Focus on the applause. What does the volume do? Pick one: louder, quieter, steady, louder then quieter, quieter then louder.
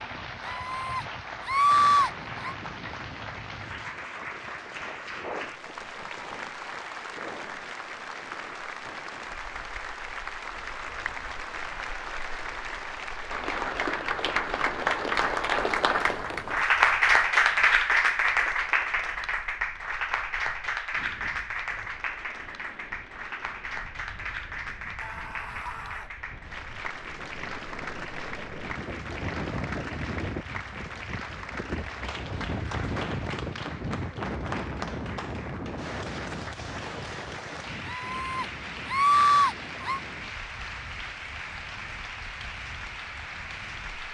louder then quieter.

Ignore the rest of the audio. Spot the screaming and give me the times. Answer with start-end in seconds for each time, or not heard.
0.5-2.5, 25.0-26.1, 37.9-40.0.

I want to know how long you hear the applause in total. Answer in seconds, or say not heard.
44 s.